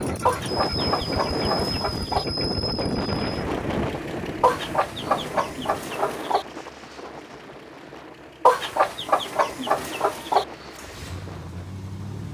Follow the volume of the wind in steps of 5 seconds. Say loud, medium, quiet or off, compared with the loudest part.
loud, medium, quiet.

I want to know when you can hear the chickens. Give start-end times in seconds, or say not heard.
0.2-2.2, 4.4-6.5, 8.4-10.4.